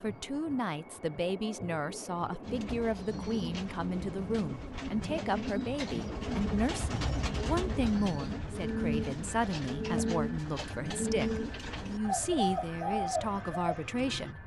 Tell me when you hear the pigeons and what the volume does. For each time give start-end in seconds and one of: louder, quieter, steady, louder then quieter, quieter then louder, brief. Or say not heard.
2.4-14.3 louder.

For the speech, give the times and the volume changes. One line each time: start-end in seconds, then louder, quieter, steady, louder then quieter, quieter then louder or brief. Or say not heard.
0.0-14.4 steady.